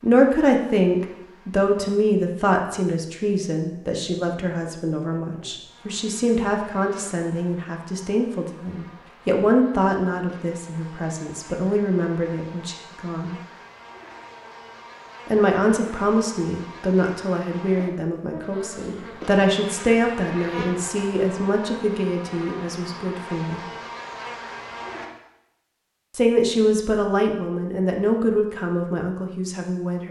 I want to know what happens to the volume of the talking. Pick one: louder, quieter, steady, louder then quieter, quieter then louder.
steady.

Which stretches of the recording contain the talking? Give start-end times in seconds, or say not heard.
0.0-13.3, 15.2-23.6, 26.1-30.0.